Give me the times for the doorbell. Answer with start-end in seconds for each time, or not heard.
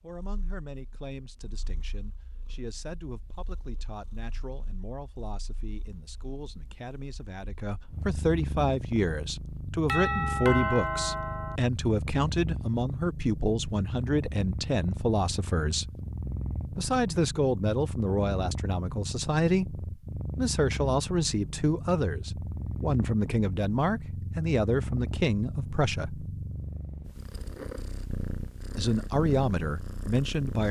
9.8-11.6.